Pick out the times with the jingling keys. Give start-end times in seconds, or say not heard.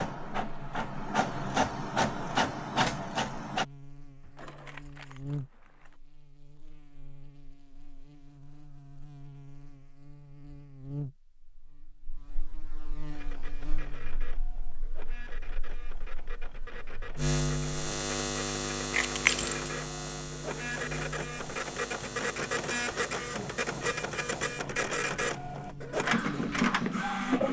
4.2-6.0, 18.9-19.7.